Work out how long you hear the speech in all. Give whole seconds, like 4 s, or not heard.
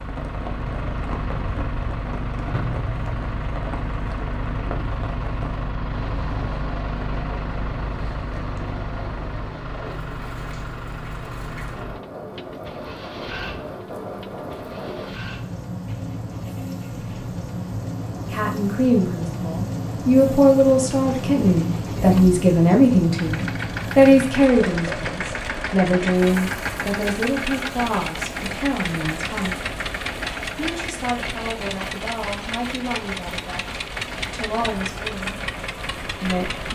17 s.